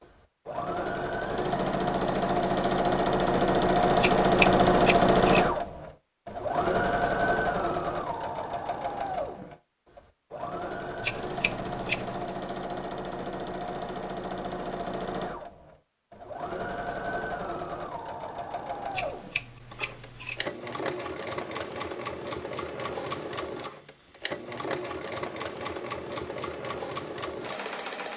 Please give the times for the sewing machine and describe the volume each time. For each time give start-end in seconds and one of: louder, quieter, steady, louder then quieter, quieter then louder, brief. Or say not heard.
0.0-28.1 quieter.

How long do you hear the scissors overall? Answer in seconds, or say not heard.
4 s.